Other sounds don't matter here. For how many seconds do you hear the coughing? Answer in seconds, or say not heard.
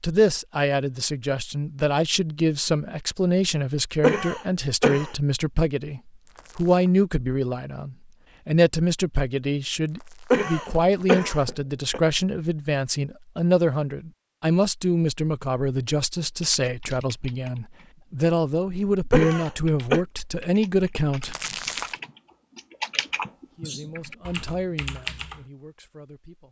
4 s.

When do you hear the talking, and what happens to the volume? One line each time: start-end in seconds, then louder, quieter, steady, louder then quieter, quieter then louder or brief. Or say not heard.
0.0-21.4 steady
23.5-26.4 brief.